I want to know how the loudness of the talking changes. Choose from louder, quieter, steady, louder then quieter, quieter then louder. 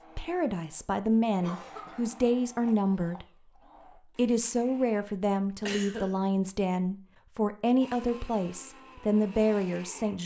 steady.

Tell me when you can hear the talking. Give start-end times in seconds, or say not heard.
0.1-3.2, 4.2-10.2.